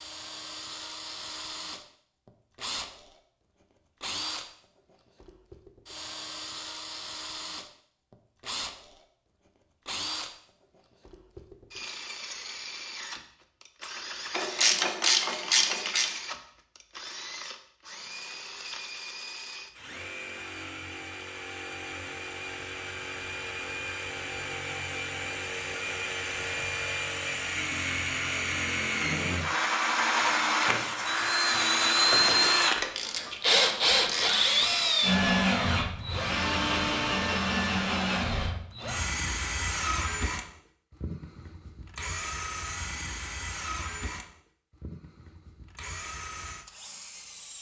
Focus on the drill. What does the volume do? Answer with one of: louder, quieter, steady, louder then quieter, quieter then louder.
louder then quieter.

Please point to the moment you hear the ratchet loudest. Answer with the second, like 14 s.
15 s.